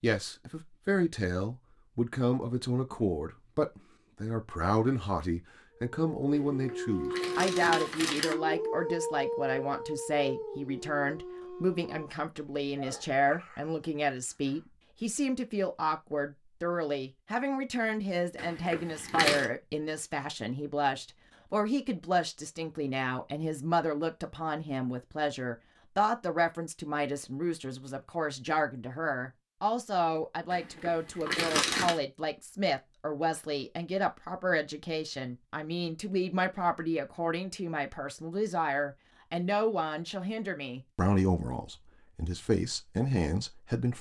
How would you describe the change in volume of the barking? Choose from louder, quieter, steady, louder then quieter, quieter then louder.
quieter.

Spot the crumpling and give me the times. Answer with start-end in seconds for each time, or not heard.
6.7-8.3, 18.4-19.4, 30.5-32.0.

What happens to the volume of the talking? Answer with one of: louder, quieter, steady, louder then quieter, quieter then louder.
steady.